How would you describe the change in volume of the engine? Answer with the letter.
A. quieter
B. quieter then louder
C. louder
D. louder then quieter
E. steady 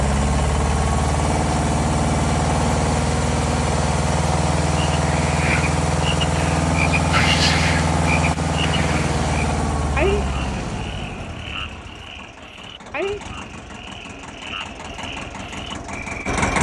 A.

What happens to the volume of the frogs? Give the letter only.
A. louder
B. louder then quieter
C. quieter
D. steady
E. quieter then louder
C.